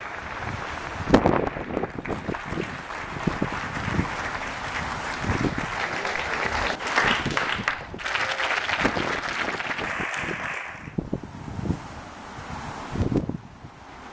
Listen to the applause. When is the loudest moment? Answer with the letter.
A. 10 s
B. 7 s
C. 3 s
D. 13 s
B.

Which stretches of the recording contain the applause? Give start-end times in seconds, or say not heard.
0.0-10.9.